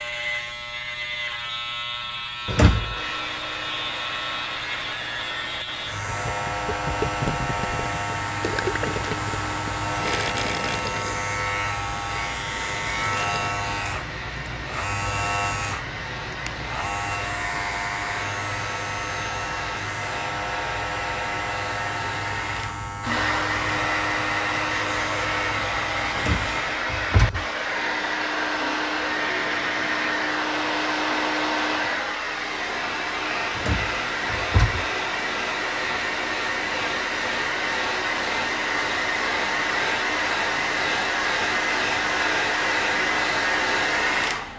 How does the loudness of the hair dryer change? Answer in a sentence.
The volume of the hair dryer goes up.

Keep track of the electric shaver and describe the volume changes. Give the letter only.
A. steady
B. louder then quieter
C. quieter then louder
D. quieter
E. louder
A.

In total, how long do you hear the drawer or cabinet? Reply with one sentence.
You can hear the drawer or cabinet for 3 seconds altogether.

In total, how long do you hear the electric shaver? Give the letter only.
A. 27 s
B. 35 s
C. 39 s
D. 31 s
A.